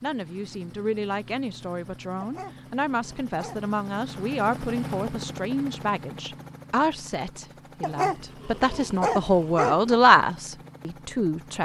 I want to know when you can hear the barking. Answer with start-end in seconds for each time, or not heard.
2.2-3.6, 7.8-9.9.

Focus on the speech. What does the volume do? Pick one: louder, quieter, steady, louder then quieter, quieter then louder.
louder.